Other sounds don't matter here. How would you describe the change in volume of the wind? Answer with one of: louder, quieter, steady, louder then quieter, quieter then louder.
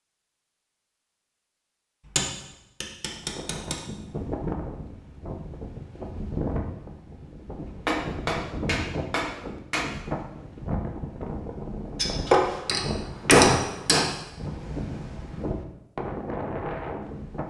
steady.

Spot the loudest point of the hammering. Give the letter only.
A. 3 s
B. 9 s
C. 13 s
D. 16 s
C.